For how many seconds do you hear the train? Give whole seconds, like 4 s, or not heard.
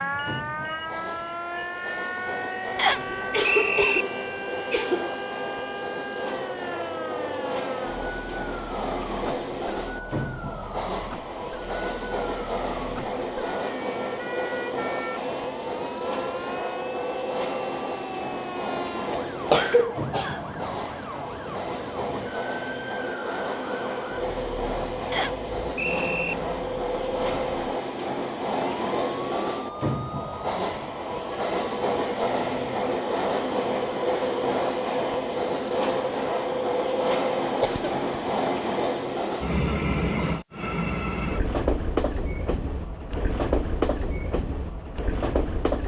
46 s.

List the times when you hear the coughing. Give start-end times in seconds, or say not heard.
3.1-5.1, 19.4-20.4, 37.6-38.3.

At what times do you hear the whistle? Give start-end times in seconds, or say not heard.
2.8-4.0, 25.1-26.4.